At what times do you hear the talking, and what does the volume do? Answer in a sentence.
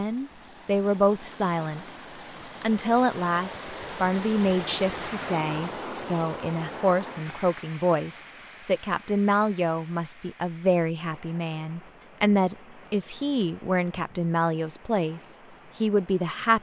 You can hear the talking briefly from 0.0 to 1.9 s; and from 2.6 to 16.5 s, at a steady volume.